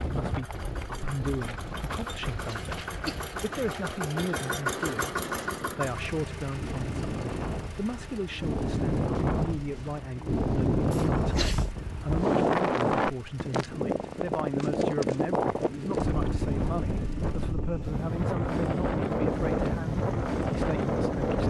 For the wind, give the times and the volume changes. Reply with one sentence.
You can hear the wind from 0.0 to 21.4 s, getting louder.